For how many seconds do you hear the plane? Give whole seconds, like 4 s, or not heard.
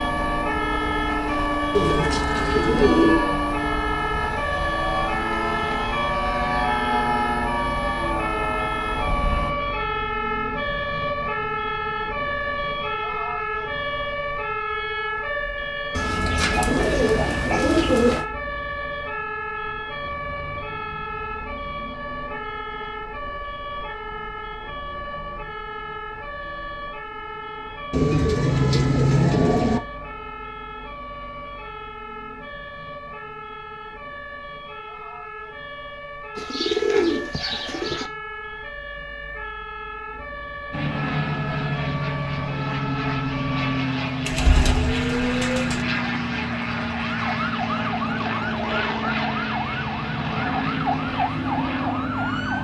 21 s.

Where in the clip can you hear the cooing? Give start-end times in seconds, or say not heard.
1.7-3.3, 15.9-18.2, 27.9-29.8, 36.4-38.1, 44.2-45.9.